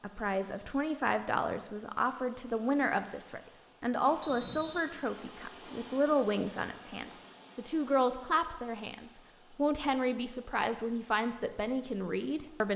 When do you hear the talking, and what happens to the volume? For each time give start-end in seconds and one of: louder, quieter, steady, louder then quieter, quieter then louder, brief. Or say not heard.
0.0-12.7 steady.